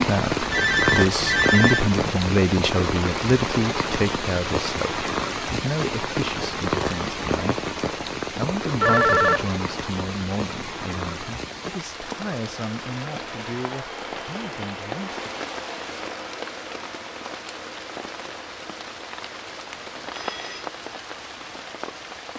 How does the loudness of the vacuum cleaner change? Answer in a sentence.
The loudness of the vacuum cleaner goes down.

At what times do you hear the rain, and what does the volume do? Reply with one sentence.
You can hear the rain from 0.0 to 22.3 s, getting quieter.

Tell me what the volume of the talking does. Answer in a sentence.
The volume of the talking goes down.